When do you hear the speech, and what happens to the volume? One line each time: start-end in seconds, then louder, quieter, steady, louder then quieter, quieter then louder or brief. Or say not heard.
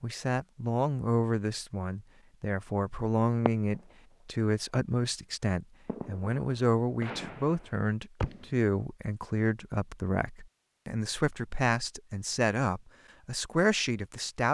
0.0-14.4 steady.